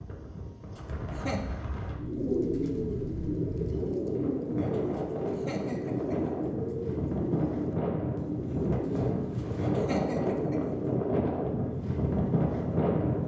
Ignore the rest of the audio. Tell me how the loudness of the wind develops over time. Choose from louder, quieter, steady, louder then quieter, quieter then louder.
louder.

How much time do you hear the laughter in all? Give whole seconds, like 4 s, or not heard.
4 s.